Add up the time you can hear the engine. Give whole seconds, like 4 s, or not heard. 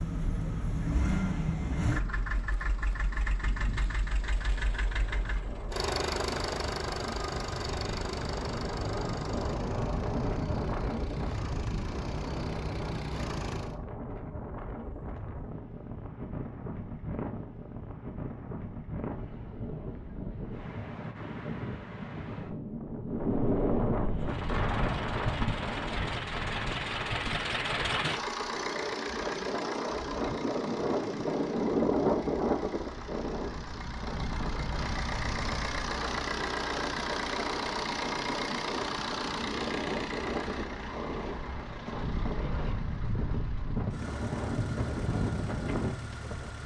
36 s.